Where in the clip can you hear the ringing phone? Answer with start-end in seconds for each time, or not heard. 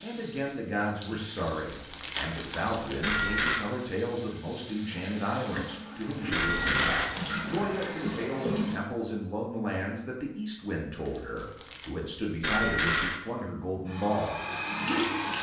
3.0-3.6, 6.3-7.2, 12.4-13.2.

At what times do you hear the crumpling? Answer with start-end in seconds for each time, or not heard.
1.4-3.2, 6.0-7.9, 11.1-11.9.